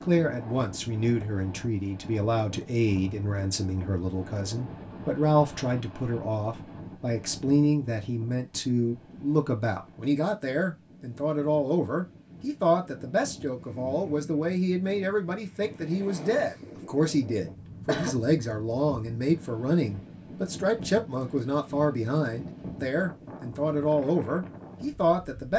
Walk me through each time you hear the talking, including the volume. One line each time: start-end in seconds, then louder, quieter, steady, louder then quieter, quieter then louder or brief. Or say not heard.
0.0-25.5 steady.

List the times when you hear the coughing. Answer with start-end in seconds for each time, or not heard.
17.4-18.1.